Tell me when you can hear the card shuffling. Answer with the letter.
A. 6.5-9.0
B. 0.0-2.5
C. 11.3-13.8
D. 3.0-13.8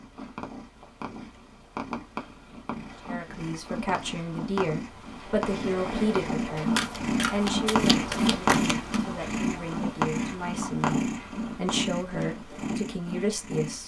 A.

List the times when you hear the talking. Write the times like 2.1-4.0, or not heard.
3.0-13.8.